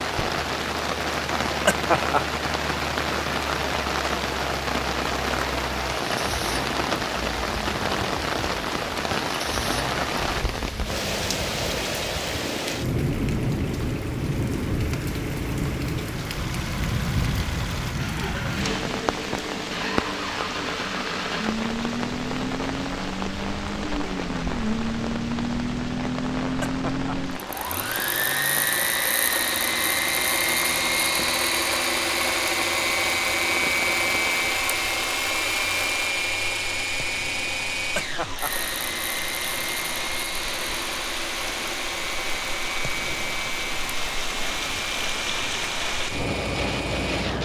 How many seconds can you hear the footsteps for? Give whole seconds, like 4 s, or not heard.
not heard.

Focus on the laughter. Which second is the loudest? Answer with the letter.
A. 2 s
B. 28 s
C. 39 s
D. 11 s
A.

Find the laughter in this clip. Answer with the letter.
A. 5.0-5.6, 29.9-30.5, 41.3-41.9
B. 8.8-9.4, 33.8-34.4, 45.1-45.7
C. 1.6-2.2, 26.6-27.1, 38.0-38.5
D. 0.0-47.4
C.